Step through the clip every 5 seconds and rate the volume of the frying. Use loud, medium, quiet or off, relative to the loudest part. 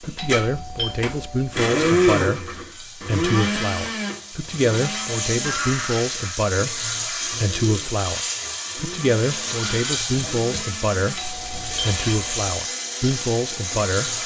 medium, loud, loud.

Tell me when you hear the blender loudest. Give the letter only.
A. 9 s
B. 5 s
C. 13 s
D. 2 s
D.